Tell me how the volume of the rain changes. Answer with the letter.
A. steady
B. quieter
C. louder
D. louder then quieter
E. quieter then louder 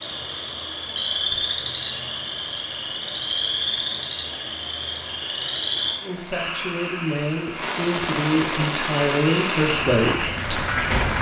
C.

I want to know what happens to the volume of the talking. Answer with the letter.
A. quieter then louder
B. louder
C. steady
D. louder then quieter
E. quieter
B.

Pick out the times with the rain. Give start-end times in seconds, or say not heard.
0.0-11.1.